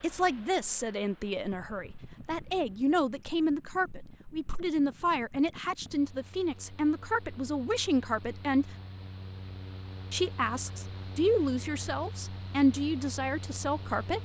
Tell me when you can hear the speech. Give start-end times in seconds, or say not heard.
0.0-8.8, 10.1-14.2.